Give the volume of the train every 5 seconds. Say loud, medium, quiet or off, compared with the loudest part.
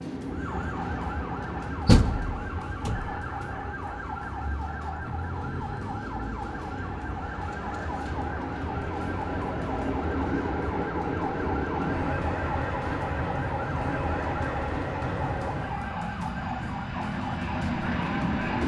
medium, medium, loud, loud.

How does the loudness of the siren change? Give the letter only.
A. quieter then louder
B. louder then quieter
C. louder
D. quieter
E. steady
E.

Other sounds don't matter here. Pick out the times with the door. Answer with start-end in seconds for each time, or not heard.
1.9-3.0.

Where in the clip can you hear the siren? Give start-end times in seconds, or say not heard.
0.0-18.6.